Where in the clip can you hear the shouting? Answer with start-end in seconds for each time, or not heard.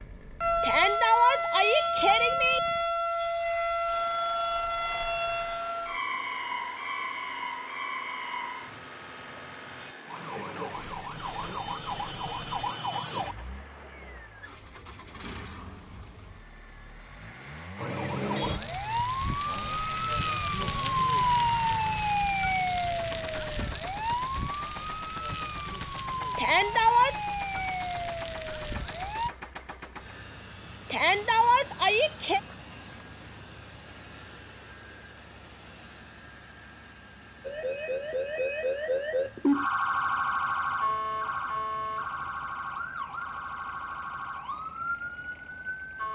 0.6-2.6, 26.4-27.1, 30.9-32.4.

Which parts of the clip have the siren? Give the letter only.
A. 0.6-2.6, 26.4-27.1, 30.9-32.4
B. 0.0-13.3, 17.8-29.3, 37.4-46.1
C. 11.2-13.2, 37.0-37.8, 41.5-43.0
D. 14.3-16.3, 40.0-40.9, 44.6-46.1
B.